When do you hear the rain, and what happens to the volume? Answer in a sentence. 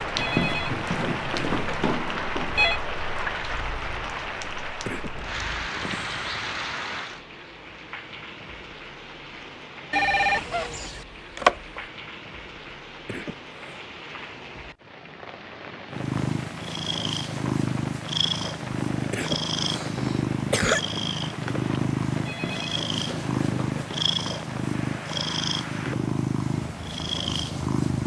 You can hear the rain from 0.0 to 28.0 s, getting quieter.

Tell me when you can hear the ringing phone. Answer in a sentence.
The ringing phone can be heard from 0.1 to 2.8 s, from 9.9 to 11.8 s and from 22.2 to 24.1 s.